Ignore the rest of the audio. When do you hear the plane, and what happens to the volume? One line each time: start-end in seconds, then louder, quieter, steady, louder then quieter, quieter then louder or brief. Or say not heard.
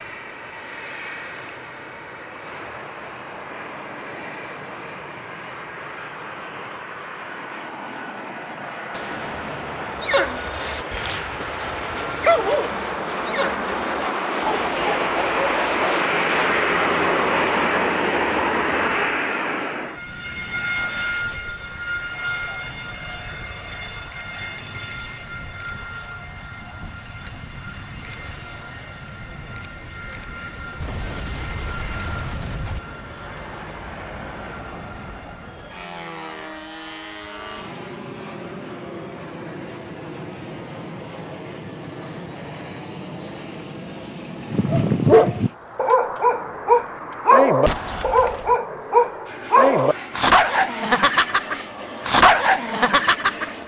0.0-53.6 louder then quieter.